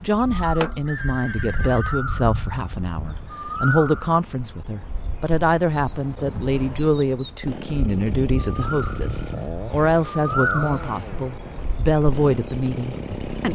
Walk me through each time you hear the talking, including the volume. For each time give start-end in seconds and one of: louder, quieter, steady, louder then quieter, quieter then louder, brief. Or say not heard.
0.0-13.5 steady.